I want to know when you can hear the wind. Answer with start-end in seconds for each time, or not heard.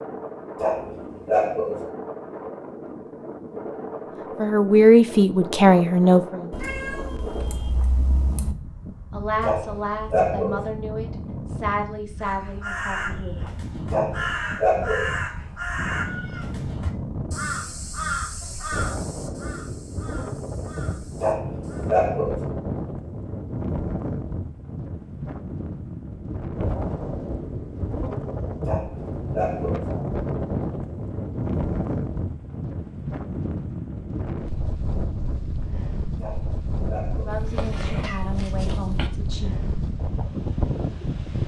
0.0-41.4.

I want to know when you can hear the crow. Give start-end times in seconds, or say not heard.
12.2-21.9.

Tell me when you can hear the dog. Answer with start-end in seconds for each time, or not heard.
0.6-1.9, 9.4-10.7, 13.9-15.2, 21.2-22.4, 28.6-29.9, 36.2-37.5.